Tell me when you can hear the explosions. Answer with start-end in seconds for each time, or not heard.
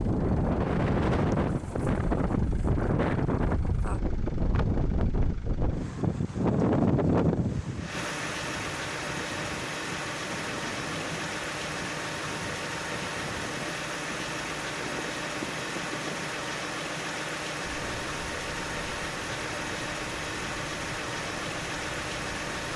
not heard.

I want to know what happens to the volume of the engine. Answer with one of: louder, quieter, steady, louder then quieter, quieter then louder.
louder.